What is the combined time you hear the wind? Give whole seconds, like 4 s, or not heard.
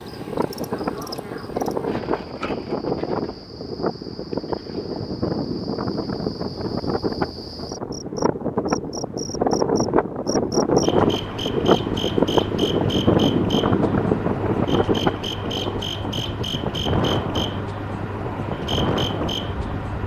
20 s.